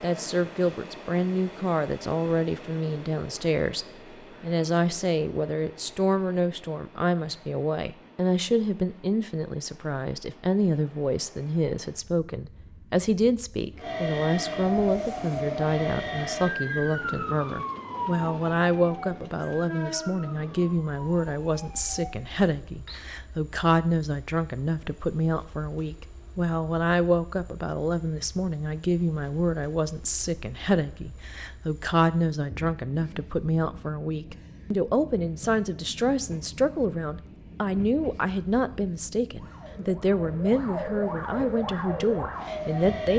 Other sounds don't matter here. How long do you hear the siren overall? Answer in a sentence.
The siren can be heard for 13 seconds in total.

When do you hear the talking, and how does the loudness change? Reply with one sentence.
The talking can be heard from 0.0 to 43.1 s, at a steady volume.